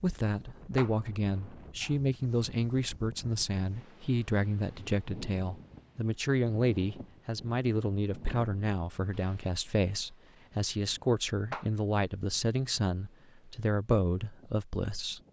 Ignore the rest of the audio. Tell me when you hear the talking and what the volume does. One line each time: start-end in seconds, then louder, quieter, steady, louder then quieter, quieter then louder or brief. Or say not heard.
0.0-15.2 steady.